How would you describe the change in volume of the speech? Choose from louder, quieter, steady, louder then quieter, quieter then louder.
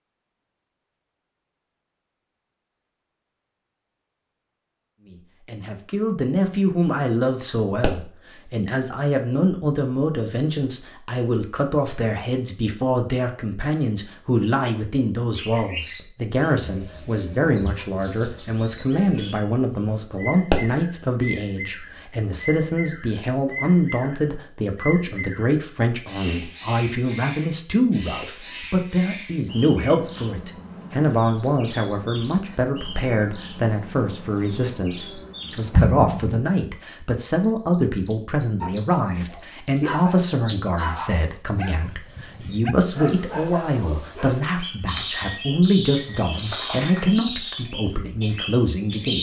steady.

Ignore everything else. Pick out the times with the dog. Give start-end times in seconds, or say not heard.
38.6-44.4.